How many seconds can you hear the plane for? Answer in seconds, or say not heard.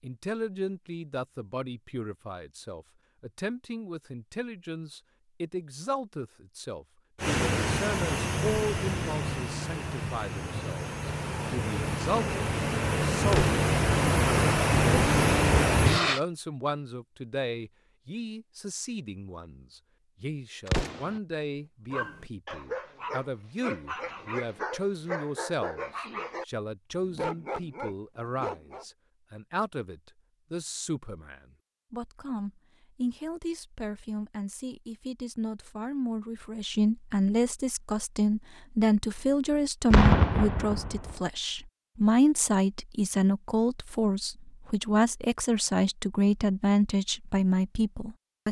9 s.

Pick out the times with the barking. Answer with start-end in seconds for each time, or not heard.
21.9-28.9.